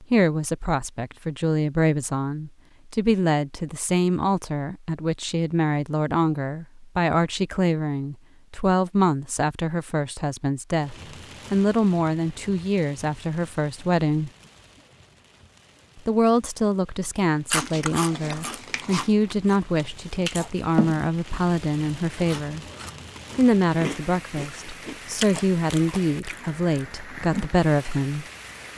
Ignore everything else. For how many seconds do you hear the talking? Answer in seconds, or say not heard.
26 s.